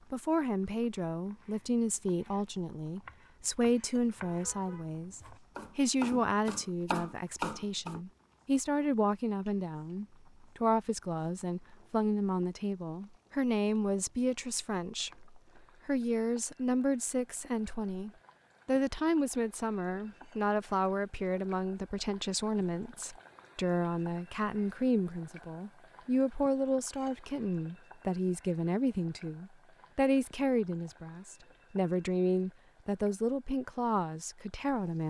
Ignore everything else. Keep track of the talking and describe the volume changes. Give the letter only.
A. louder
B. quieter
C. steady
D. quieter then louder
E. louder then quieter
C.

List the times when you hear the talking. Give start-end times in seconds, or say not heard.
0.1-35.0.